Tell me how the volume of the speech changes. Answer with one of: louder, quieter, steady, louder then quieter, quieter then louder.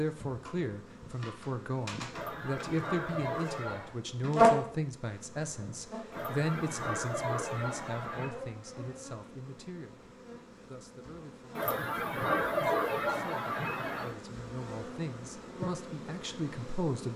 quieter then louder.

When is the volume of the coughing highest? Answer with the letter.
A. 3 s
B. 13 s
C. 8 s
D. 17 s
B.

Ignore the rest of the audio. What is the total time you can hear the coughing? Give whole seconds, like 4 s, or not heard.
7 s.